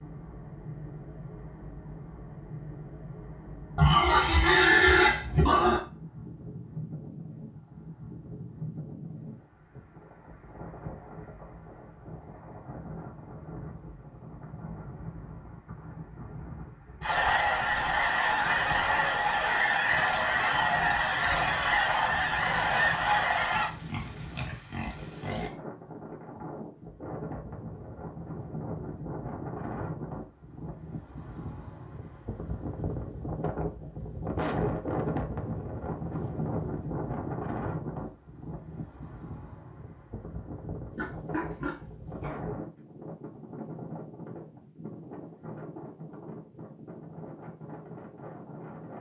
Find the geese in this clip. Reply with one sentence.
The geese can be heard from 17.0 to 23.7 s.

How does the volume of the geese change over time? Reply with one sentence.
The volume of the geese stays about the same.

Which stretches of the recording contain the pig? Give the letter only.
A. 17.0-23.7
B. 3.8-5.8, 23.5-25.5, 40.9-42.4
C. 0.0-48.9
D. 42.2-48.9
B.